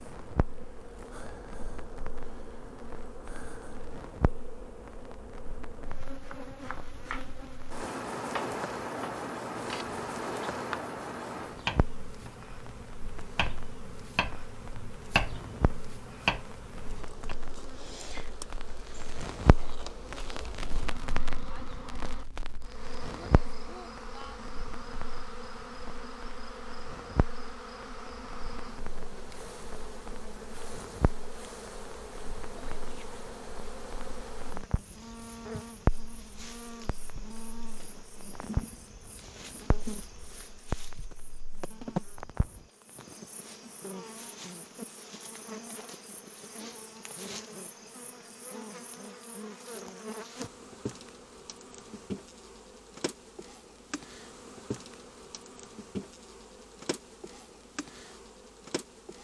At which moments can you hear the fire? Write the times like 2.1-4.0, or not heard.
0.1-42.6.